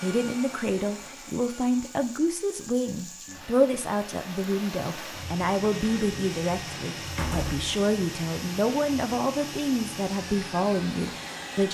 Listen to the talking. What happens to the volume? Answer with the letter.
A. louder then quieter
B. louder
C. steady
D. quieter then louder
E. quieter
C.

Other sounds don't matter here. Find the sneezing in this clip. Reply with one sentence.
You can't hear the sneezing here.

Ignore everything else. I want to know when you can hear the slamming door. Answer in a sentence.
You can hear the slamming door from 7.0 to 7.7 s.